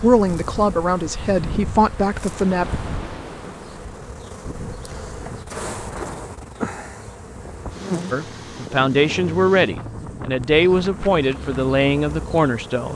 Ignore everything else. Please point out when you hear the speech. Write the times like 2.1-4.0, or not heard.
0.0-2.7, 8.1-12.9.